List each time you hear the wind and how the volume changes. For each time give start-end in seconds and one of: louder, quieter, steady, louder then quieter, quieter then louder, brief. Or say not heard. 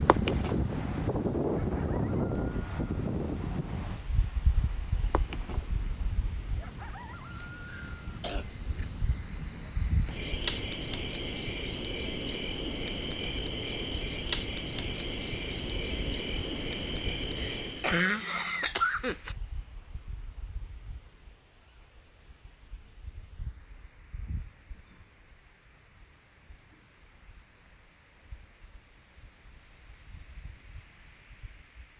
0.0-31.9 quieter.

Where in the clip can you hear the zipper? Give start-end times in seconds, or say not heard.
not heard.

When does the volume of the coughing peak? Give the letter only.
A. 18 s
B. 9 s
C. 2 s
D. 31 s
A.